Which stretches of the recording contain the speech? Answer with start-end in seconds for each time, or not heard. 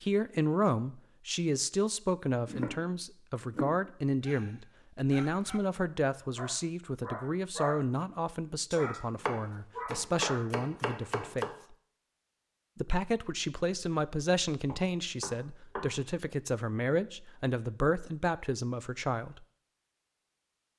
0.0-11.8, 12.8-19.4.